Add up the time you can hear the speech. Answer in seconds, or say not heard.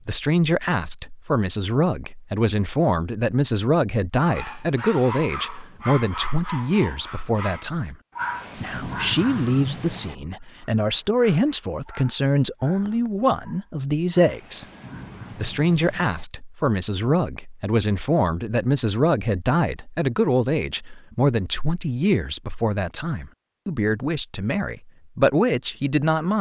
25 s.